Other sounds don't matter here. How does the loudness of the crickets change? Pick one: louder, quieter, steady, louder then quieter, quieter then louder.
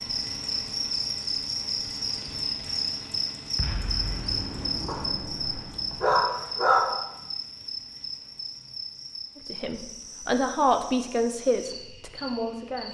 quieter.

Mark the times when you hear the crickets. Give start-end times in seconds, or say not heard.
0.0-12.8.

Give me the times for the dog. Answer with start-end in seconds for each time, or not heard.
4.8-6.9.